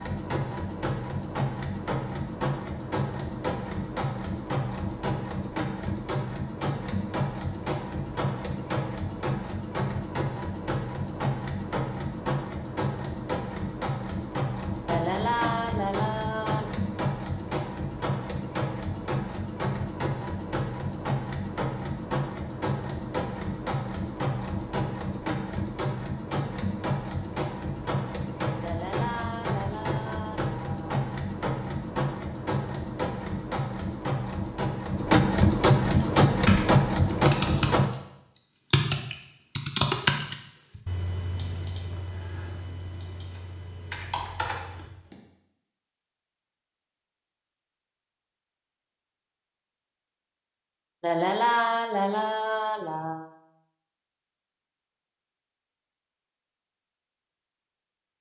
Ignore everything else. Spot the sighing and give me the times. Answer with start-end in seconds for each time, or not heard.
14.8-16.7, 28.6-31.1, 51.0-53.2.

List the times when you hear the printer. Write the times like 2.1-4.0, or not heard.
0.0-37.9.